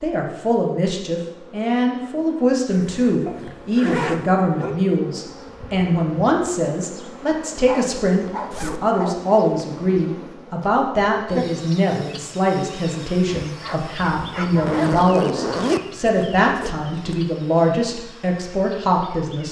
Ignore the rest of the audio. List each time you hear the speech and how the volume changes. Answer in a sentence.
The speech can be heard from 0.0 to 19.4 s, at a steady volume.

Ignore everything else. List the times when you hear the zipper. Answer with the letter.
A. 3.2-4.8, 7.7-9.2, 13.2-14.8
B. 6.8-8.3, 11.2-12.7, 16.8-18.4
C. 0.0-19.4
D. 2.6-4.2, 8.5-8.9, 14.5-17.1
D.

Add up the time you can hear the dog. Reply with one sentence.
You can hear the dog for 5 seconds altogether.